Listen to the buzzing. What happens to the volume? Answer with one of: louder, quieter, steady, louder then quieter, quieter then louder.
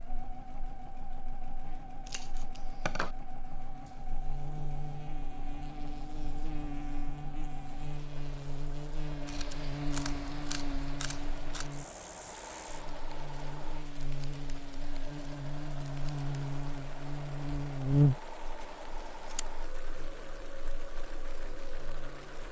louder.